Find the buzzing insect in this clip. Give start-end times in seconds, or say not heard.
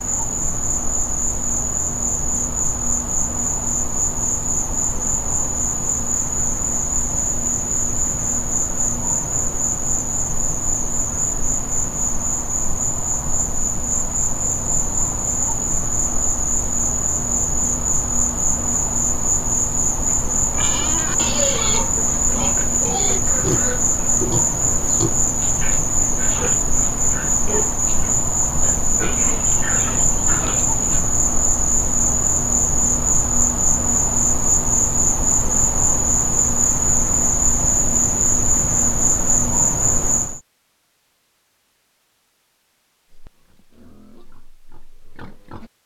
0.0-40.4.